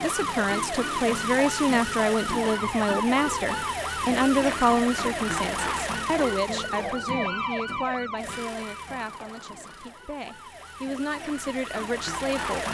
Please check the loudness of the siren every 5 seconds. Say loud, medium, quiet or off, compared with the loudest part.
loud, loud, medium.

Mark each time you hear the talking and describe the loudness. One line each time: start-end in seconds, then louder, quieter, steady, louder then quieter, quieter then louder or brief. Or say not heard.
0.0-12.6 quieter.